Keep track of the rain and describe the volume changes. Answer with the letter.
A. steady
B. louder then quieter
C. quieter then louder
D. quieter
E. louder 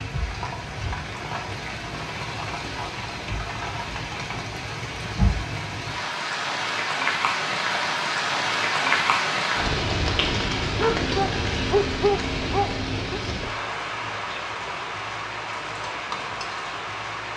B.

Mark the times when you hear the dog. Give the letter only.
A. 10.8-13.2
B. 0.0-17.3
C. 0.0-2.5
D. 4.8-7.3
A.